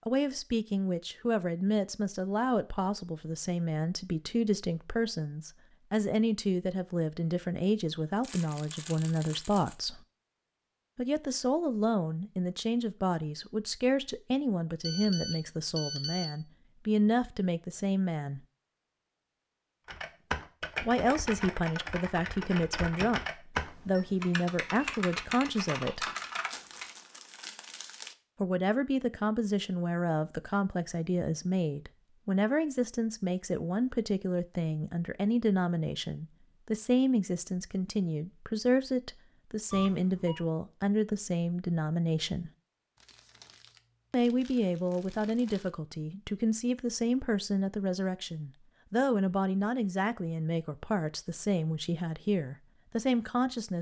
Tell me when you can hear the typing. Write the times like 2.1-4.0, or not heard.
19.9-26.9.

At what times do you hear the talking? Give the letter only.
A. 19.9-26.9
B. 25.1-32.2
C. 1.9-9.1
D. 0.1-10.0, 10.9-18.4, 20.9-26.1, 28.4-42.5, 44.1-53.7
D.